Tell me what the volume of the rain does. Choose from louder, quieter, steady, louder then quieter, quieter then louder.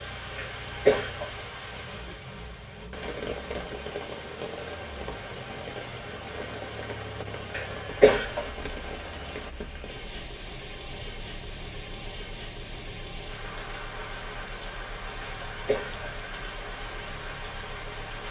steady.